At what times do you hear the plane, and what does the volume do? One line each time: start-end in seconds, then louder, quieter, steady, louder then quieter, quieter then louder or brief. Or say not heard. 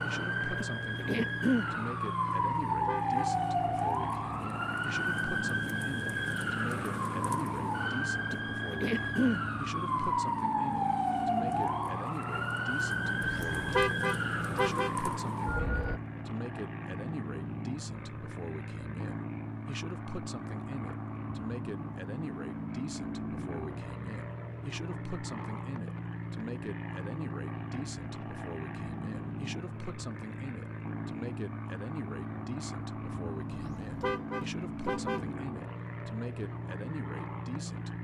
0.0-37.9 steady.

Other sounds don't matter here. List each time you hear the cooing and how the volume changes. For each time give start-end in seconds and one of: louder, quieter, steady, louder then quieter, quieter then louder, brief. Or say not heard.
not heard.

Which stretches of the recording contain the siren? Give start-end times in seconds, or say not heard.
0.0-16.0.